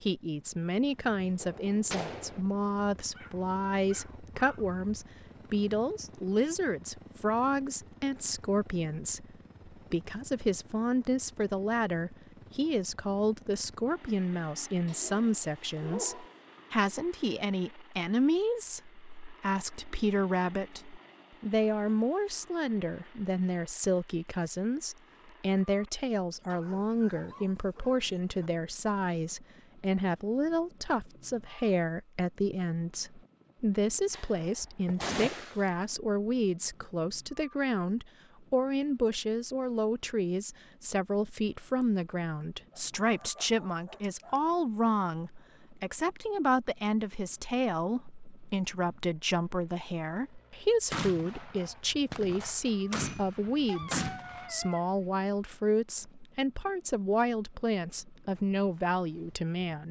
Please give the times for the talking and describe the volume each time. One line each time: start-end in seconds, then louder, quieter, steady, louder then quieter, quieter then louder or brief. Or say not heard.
0.0-59.8 steady.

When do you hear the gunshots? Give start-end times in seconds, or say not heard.
1.4-2.4, 34.1-35.9, 50.9-54.5.